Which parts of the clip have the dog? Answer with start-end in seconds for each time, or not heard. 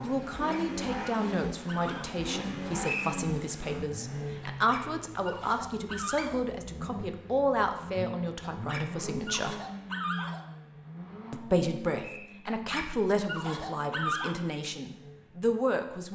0.5-2.2, 4.5-6.4, 8.5-10.4, 12.4-14.3.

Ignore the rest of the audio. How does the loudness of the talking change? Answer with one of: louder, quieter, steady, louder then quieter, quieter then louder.
steady.